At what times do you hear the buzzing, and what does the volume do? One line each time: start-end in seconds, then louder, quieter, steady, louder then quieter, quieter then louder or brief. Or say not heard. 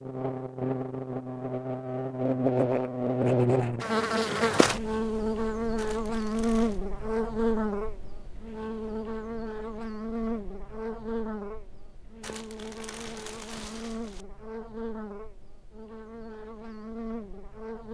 0.0-17.8 quieter.